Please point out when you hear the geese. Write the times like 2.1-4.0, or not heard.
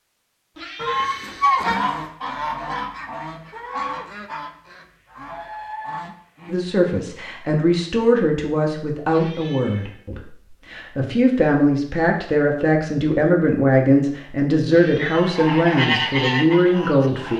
0.8-7.0, 15.1-17.3.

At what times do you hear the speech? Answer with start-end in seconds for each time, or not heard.
6.5-17.3.